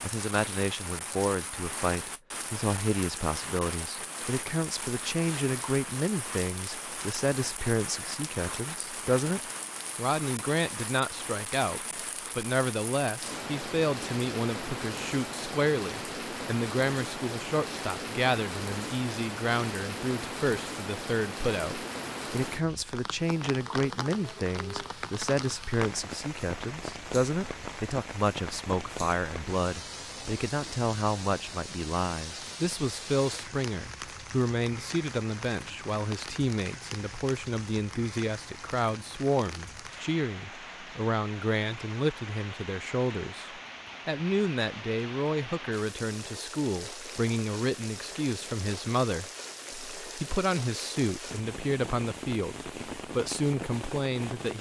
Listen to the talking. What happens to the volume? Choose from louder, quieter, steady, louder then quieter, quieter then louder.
steady.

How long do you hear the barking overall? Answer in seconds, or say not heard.
not heard.